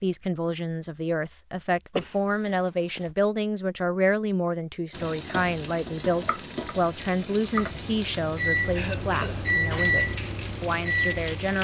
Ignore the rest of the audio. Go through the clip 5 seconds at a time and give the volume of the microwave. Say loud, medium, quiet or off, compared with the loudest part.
off, loud, loud.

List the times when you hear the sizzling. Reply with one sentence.
You can hear the sizzling from 4.9 to 11.5 s.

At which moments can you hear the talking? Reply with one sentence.
You can hear the talking from 0.0 to 11.5 s.